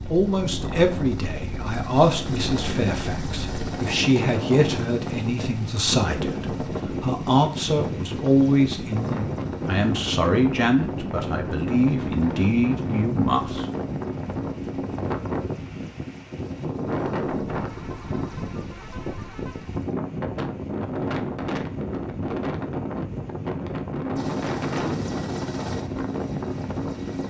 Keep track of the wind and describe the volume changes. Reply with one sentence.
The volume of the wind stays about the same.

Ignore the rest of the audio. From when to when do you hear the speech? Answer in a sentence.
You can hear the speech from 0.1 to 13.7 s.